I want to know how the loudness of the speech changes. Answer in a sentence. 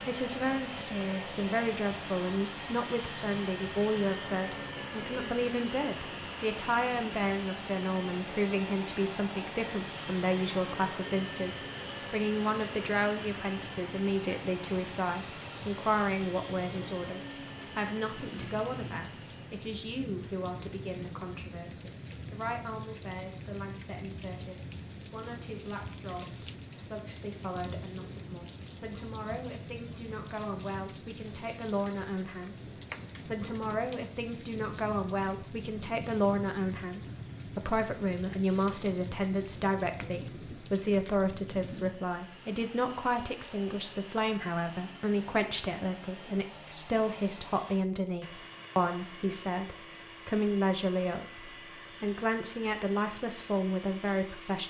The volume of the speech goes down, then up.